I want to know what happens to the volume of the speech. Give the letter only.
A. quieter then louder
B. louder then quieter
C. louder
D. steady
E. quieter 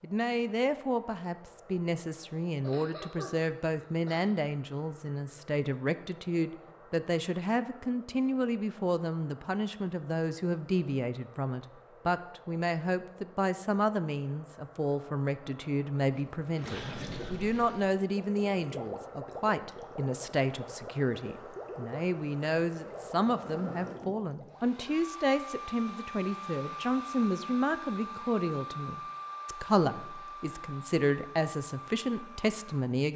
D.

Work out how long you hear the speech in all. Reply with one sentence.
The speech can be heard for 33 seconds in total.